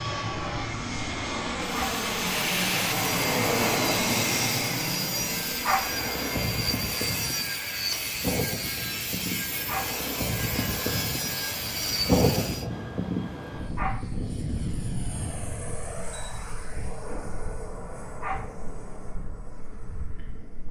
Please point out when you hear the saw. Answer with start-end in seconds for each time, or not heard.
1.9-12.7.